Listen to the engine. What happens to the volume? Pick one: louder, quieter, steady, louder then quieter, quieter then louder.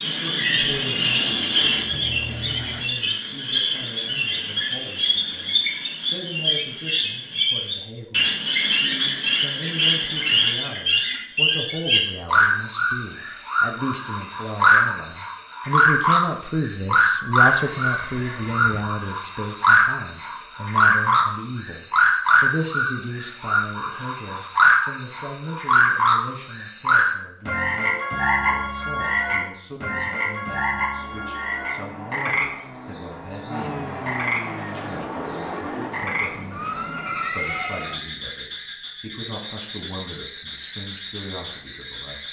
louder.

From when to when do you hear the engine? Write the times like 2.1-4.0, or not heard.
30.9-36.1.